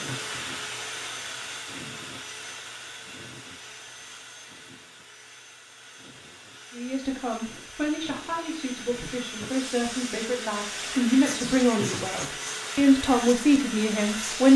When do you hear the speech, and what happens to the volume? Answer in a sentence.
You can hear the speech from 6.7 to 14.5 s, getting louder.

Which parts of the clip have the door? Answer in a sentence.
The door can't be heard in this clip.